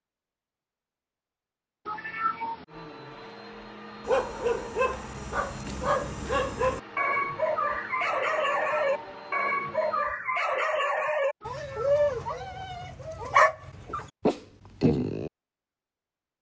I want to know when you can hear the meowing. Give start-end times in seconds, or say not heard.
1.9-2.6, 8.6-9.2, 11.4-12.2.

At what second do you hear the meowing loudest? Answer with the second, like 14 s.
2 s.